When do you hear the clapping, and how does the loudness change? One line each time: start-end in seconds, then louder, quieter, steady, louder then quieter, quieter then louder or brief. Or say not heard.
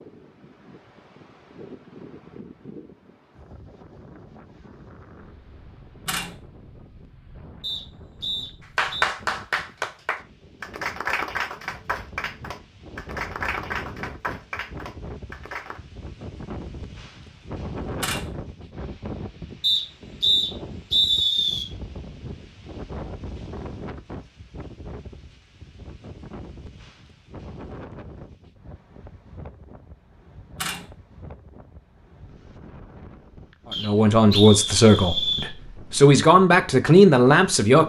8.8-15.8 quieter.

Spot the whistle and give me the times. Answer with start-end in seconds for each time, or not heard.
7.6-9.1, 19.6-21.6, 33.7-35.5.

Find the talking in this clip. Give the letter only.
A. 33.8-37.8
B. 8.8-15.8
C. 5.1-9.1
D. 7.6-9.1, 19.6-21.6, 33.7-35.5
A.